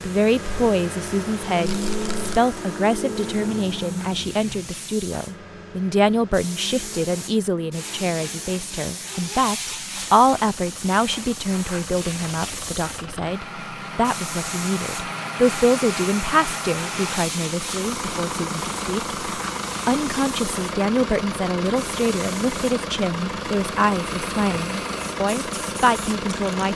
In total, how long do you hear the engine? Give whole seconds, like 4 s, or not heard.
27 s.